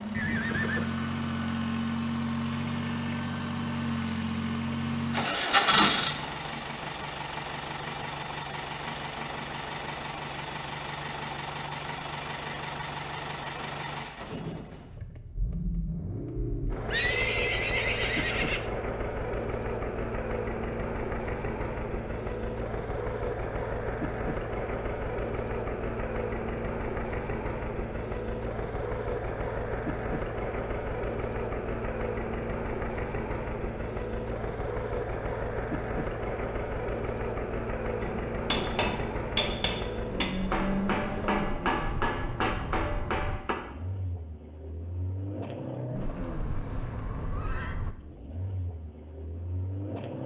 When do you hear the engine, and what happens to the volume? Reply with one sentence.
You can hear the engine from 0.0 to 50.2 s, getting quieter.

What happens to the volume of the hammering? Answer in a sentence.
The loudness of the hammering stays about the same.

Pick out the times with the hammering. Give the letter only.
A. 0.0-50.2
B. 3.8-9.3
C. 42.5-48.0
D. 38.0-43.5
D.